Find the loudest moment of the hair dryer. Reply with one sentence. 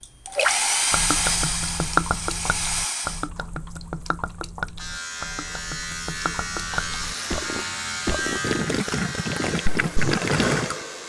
The volume of the hair dryer peaks at 1 second.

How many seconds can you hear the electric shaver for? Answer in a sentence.
The electric shaver can be heard for 6 seconds in total.